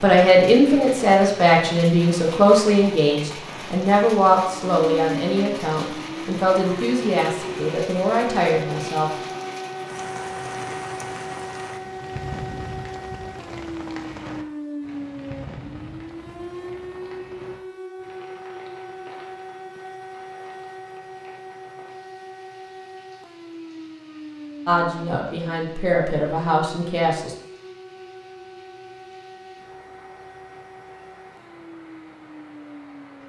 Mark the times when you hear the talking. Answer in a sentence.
You can hear the talking from 0.0 to 9.1 s and from 24.6 to 27.4 s.